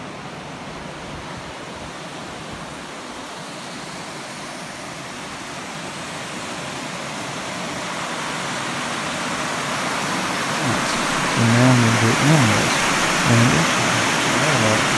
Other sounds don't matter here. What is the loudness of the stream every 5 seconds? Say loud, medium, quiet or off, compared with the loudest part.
quiet, medium, loud.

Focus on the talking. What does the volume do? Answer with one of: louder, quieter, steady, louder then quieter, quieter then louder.
quieter.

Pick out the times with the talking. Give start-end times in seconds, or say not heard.
10.6-14.9.